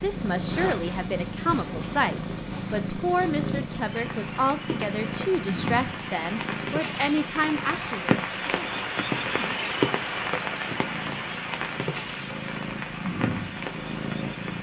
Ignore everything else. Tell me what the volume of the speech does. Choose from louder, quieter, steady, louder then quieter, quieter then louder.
steady.